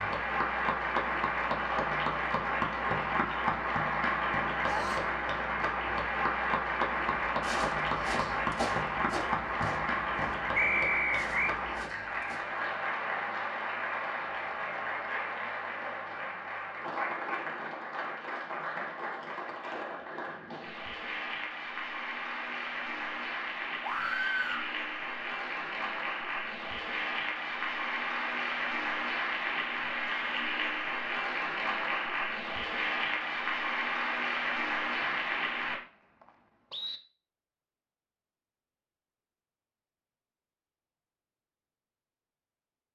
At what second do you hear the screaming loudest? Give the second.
24 s.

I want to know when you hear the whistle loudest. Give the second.
11 s.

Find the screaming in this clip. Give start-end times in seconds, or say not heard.
4.6-5.2, 23.8-24.6.